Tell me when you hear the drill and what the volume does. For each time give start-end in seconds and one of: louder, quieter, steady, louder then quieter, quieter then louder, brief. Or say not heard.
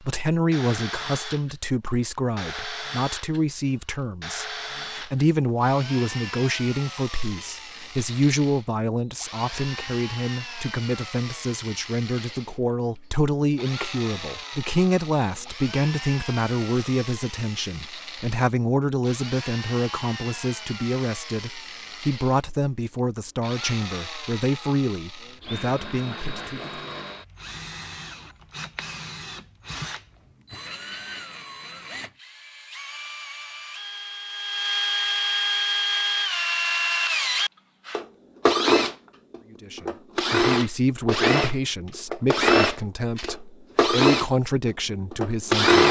0.5-45.8 louder.